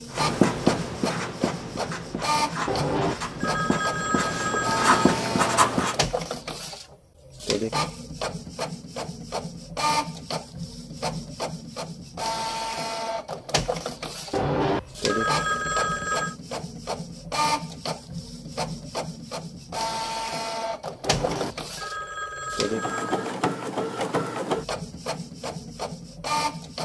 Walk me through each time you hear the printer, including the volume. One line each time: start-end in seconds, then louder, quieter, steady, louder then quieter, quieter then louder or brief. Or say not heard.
0.0-26.7 steady.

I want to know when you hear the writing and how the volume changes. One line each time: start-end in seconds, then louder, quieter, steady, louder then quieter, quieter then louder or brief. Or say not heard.
0.1-6.0 quieter then louder.